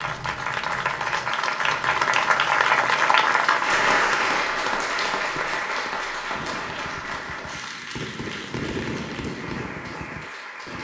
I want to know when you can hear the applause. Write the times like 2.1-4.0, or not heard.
0.0-10.8.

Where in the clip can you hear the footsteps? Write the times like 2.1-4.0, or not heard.
not heard.